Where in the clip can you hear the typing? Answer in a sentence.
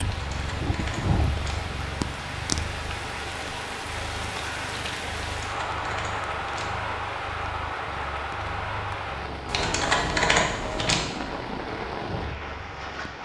You can hear the typing from 0.1 to 1.6 s, from 5.4 to 6.8 s and from 9.4 to 11.1 s.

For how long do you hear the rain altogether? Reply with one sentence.
The rain can be heard for 13 seconds in total.